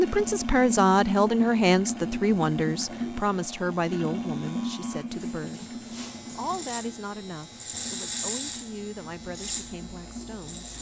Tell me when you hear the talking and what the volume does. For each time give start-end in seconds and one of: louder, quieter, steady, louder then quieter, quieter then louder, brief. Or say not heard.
0.0-10.7 quieter.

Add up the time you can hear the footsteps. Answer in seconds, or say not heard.
not heard.